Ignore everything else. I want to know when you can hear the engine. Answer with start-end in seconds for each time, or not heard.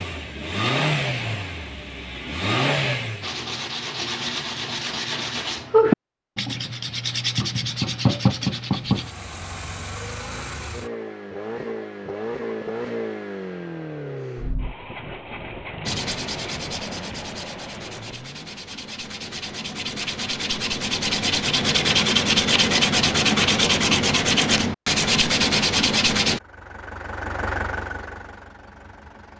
0.0-3.4, 8.8-18.6, 26.2-29.3.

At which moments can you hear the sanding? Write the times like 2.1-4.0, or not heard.
3.2-9.2, 15.8-26.4.